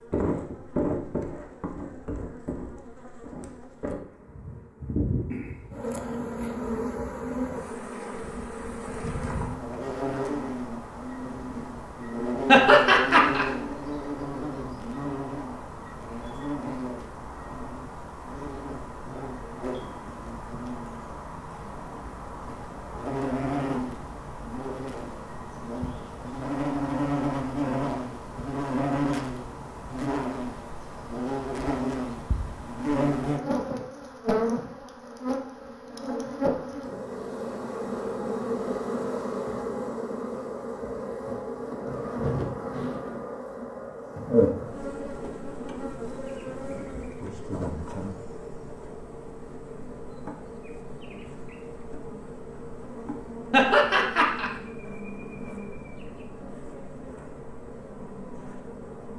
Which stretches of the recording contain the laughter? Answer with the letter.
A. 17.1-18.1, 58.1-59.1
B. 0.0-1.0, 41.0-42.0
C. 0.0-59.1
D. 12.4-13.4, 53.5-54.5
D.